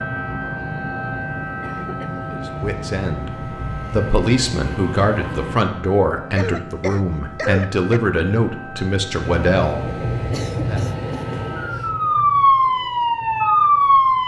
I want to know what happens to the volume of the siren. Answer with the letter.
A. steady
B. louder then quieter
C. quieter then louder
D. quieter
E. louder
C.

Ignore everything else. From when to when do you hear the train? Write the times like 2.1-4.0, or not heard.
0.2-5.6, 9.2-14.2.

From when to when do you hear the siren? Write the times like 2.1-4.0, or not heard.
0.0-14.2.